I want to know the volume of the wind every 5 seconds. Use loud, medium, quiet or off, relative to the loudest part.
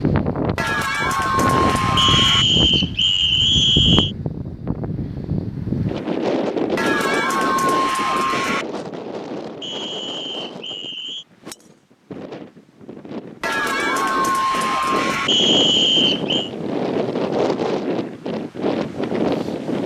loud, loud, medium, loud.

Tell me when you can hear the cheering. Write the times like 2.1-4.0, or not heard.
0.6-2.5, 6.8-8.7, 13.4-15.3.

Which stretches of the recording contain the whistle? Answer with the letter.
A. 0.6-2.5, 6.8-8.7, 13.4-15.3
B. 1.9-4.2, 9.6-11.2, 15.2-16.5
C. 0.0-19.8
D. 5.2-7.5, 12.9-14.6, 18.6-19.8
B.